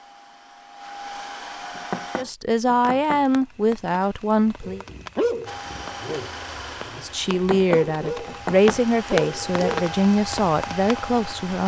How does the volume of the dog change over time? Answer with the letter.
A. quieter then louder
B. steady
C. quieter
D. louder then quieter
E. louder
A.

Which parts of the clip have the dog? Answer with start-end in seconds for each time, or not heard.
4.6-9.9.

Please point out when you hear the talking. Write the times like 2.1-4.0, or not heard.
2.1-4.8, 7.0-11.6.